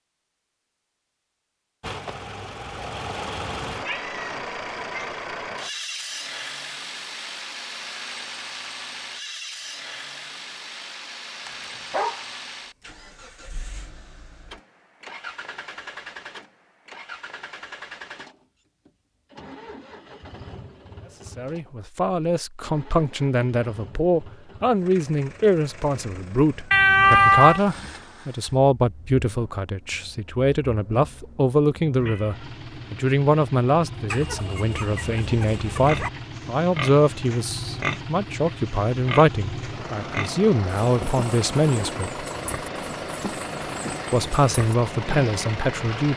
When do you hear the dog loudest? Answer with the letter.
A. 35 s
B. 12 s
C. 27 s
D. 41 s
B.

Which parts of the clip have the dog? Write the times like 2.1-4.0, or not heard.
11.4-12.2, 34.1-36.1.